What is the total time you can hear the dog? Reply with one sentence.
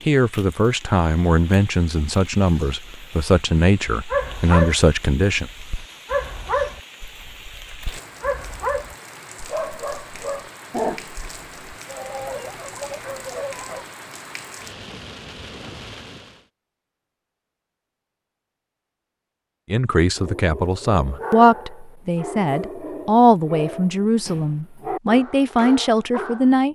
The dog can be heard for 16 seconds in total.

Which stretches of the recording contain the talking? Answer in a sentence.
You can hear the talking from 0.1 to 5.5 s and from 19.7 to 26.7 s.